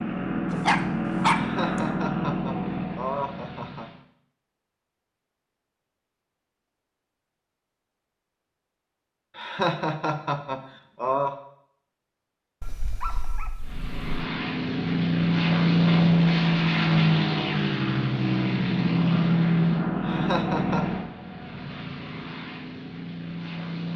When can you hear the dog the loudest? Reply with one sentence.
The loudest moment of the dog is at 1 second.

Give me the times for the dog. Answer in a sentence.
The dog can be heard from 0.5 to 1.8 s and from 12.6 to 14.2 s.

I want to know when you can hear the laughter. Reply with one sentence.
The laughter can be heard from 1.3 to 3.9 s, from 9.3 to 11.3 s and from 20.0 to 20.9 s.